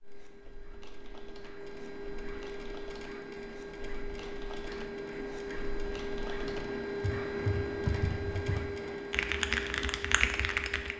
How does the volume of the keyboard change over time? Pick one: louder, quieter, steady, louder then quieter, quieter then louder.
louder.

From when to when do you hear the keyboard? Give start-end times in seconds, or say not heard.
0.1-10.9.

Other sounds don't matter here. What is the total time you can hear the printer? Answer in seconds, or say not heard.
11 s.